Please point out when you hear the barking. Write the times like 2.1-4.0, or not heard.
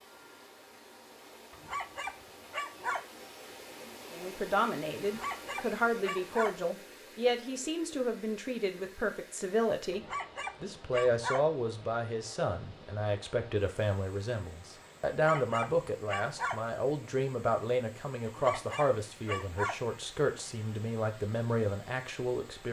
1.5-3.0, 5.0-6.5, 9.9-11.4, 15.1-16.6, 18.2-19.8.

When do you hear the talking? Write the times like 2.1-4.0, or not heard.
4.1-22.6.